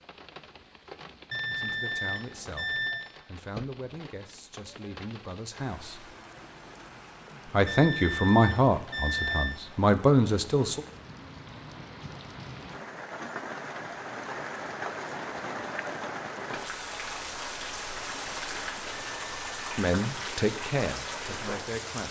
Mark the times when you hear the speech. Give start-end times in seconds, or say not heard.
1.5-6.2, 7.5-10.8, 19.8-22.0.